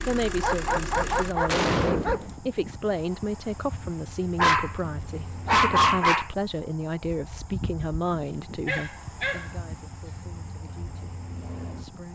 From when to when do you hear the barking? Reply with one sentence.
You can hear the barking from 0.4 to 2.3 s, from 4.3 to 6.3 s and from 8.7 to 9.5 s.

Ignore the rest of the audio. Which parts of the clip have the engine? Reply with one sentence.
The engine can be heard from 0.0 to 1.5 s.